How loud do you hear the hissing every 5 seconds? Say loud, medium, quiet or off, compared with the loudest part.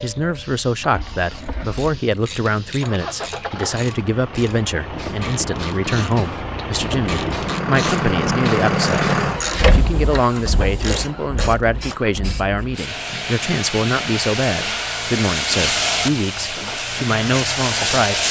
quiet, quiet, medium, loud.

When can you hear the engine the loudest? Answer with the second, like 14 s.
9 s.